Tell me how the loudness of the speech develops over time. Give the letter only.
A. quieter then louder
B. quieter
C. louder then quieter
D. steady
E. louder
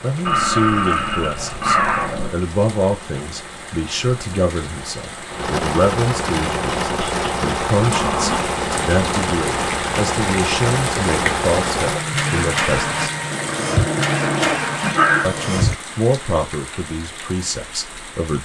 D.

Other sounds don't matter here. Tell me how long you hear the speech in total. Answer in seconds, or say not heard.
16 s.